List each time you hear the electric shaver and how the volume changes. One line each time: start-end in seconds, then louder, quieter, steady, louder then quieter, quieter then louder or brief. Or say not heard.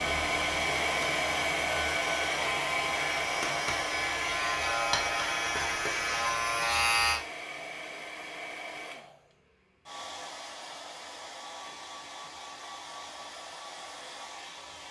0.0-7.2 louder.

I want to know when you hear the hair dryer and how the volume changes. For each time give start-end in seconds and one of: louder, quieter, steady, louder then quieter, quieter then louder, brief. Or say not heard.
0.0-14.8 quieter.